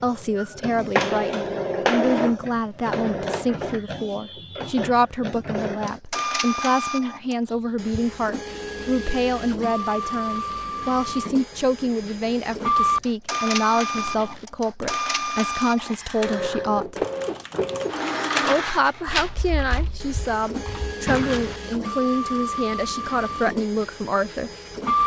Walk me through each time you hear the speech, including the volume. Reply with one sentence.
The speech can be heard from 0.0 to 17.1 s, at a steady volume; and from 18.4 to 24.5 s, at a steady volume.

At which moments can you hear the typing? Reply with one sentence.
The typing can be heard from 13.9 to 21.6 s.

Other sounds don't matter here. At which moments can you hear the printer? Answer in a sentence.
The printer can be heard from 0.0 to 25.0 s.